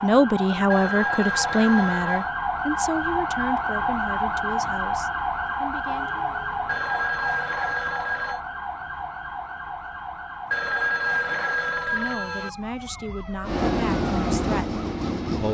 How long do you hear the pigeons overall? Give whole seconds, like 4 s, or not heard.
not heard.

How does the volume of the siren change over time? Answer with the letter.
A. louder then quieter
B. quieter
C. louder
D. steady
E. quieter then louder
B.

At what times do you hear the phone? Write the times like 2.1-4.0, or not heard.
0.7-2.3, 6.7-8.4, 10.5-12.5.